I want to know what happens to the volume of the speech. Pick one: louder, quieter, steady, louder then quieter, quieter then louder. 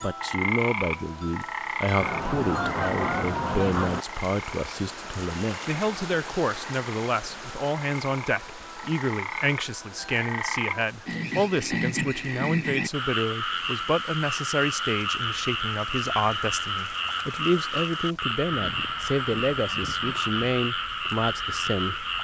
steady.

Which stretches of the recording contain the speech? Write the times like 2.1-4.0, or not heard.
0.0-22.1.